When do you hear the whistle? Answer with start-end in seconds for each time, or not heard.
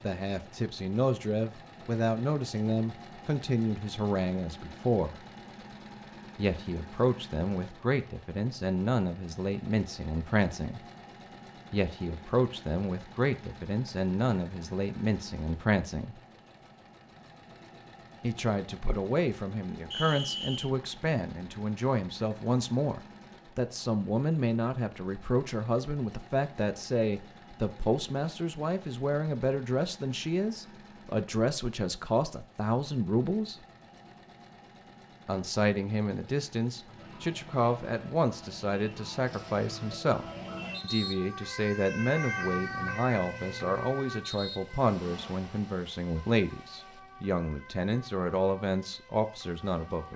19.9-20.7.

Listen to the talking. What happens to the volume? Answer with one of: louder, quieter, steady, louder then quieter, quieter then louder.
steady.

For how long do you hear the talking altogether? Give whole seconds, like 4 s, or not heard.
44 s.